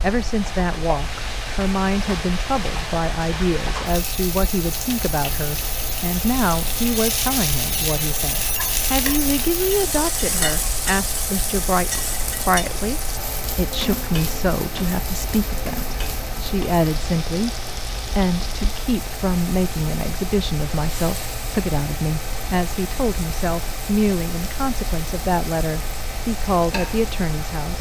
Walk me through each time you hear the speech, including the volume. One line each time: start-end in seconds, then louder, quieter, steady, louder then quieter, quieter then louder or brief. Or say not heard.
0.0-17.6 steady
18.1-27.7 steady.